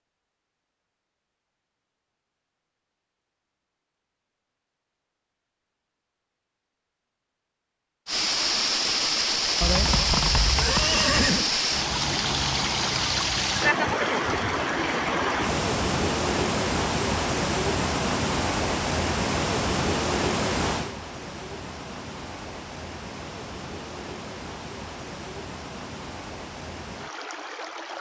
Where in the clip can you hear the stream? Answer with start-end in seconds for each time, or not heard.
8.1-27.9.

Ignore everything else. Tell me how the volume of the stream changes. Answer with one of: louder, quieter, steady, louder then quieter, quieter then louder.
quieter.